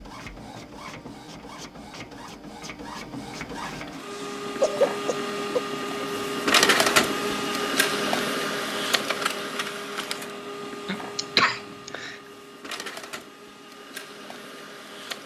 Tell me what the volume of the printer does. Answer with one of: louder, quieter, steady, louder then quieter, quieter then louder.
louder then quieter.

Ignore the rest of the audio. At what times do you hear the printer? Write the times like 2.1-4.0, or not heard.
0.0-15.2.